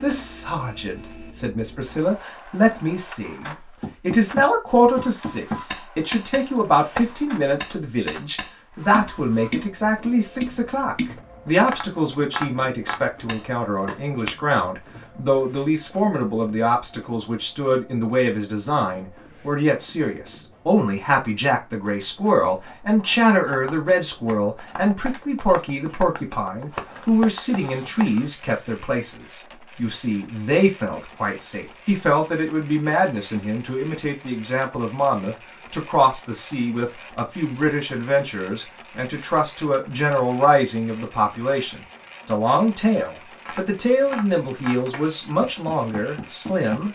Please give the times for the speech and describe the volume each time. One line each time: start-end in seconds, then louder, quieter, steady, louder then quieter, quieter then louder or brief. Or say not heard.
0.0-46.9 steady.